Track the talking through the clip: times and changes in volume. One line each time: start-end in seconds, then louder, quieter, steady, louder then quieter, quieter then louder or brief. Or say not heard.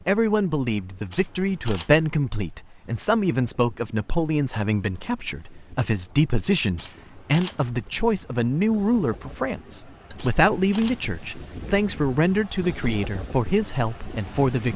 0.1-14.7 steady.